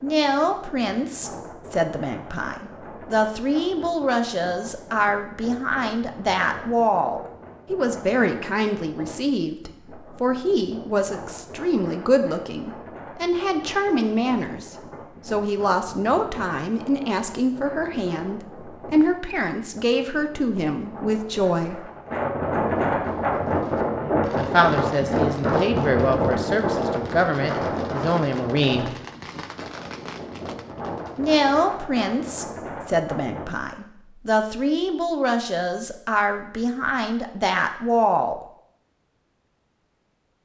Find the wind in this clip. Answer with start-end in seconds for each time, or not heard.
0.0-33.5.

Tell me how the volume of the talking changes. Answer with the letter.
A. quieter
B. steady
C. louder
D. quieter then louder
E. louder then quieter
B.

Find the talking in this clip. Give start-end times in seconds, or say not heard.
0.0-21.9, 24.4-28.9, 31.1-38.4.